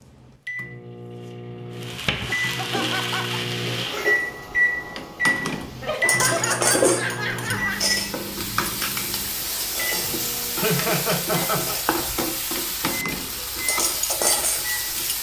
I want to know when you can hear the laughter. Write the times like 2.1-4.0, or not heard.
2.2-3.4, 5.8-7.8, 10.6-11.8.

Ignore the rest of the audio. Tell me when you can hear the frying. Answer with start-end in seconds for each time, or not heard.
1.8-15.1.